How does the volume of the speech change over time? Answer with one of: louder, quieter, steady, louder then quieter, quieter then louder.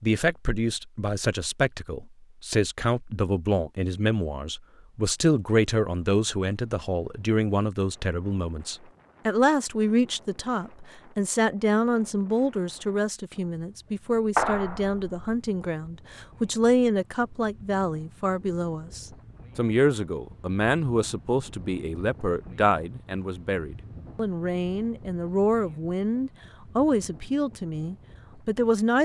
steady.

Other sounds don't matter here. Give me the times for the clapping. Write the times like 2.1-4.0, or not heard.
14.3-15.2.